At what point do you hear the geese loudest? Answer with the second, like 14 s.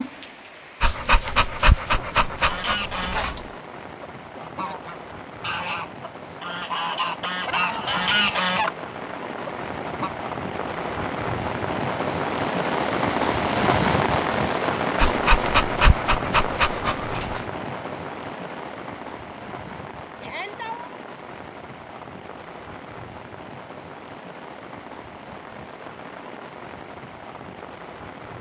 8 s.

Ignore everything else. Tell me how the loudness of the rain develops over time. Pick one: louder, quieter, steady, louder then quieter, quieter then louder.
louder then quieter.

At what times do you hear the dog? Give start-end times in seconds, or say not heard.
0.8-3.5, 14.9-17.4.